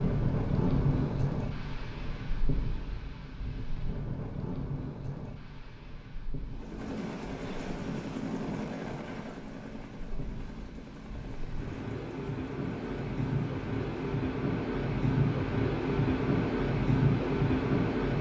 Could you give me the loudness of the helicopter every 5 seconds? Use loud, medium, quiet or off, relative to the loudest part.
off, loud, medium, off.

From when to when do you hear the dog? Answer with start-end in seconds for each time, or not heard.
not heard.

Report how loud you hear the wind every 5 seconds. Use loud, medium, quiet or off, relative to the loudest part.
medium, quiet, medium, loud.